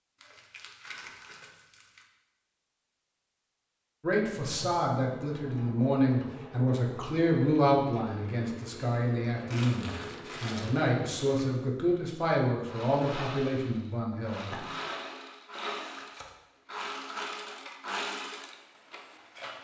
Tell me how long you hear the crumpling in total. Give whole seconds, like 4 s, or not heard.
4 s.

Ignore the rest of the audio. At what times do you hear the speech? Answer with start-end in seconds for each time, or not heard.
4.0-14.7.